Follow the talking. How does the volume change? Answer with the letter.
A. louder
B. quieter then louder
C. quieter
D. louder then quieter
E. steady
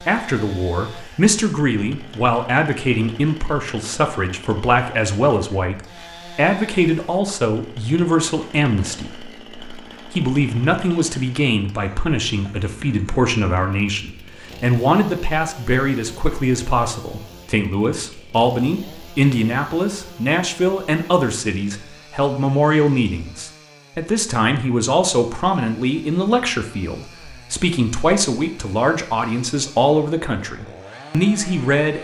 E.